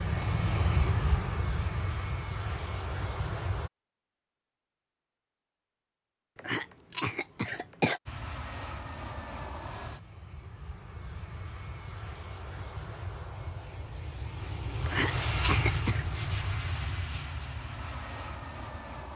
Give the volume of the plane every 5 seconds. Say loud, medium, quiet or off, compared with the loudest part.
loud, medium, medium, loud.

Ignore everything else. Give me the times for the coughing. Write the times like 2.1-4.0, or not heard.
6.3-8.0, 14.8-16.1.